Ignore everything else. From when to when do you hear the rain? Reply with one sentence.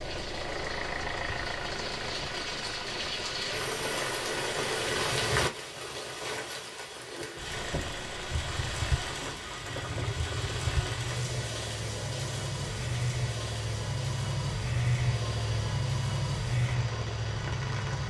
You can hear the rain from 0.0 to 18.0 s.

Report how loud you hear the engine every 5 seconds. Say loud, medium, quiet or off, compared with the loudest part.
medium, medium, loud, loud.